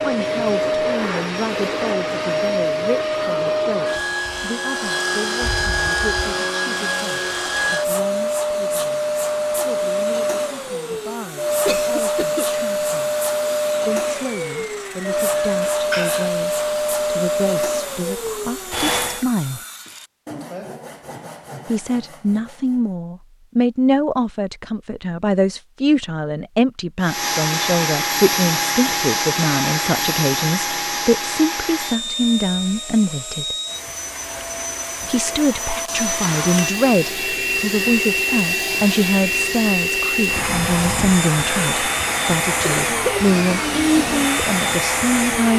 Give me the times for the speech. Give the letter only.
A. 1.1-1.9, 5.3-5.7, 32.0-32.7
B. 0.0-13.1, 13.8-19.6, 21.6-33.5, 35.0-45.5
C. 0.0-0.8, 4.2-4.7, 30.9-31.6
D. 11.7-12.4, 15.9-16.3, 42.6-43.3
B.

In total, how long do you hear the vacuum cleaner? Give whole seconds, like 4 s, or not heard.
38 s.